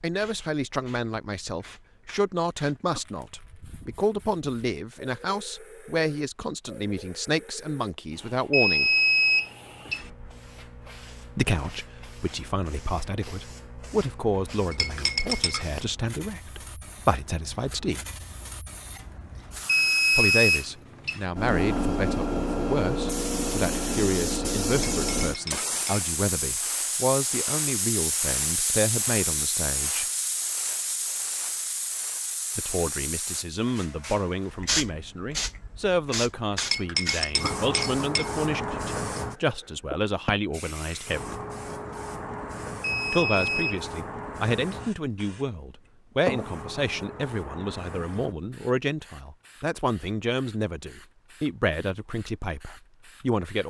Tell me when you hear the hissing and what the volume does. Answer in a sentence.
You can hear the hissing from 0.1 to 53.6 s, getting louder then quieter.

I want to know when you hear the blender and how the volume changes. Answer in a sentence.
You can't hear the blender here.